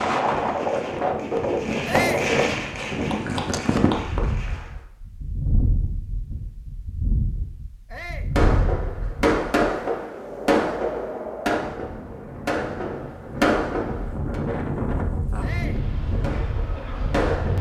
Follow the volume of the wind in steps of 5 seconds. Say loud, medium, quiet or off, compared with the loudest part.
loud, medium, medium, medium.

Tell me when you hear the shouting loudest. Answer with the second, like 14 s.
2 s.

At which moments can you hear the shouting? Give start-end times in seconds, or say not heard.
1.9-2.3, 7.9-8.3, 15.4-15.8.